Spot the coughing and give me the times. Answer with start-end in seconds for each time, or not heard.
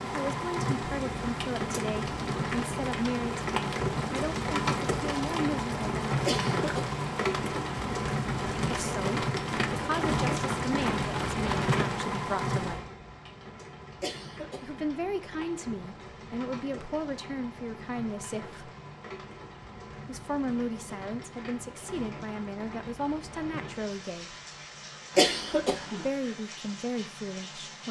6.2-7.0, 14.0-14.8, 25.1-26.1.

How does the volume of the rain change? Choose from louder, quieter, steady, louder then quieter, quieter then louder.
quieter.